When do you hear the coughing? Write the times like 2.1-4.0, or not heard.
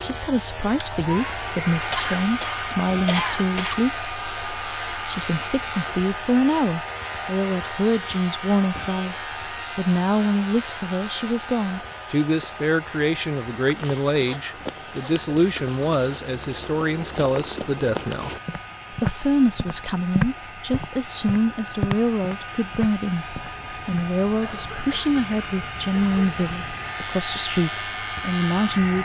1.9-3.8, 14.2-16.1, 24.4-26.6.